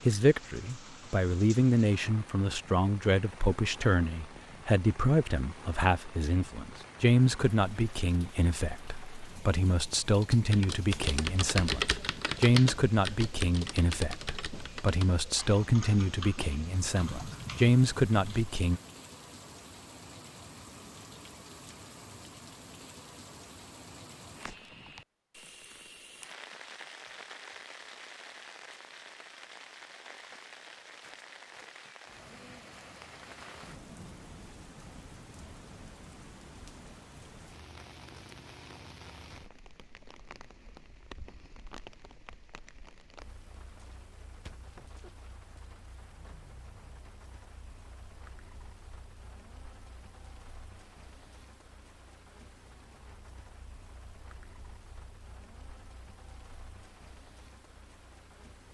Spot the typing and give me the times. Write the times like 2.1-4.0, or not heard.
10.1-18.8.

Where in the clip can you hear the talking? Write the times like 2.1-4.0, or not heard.
0.1-18.8.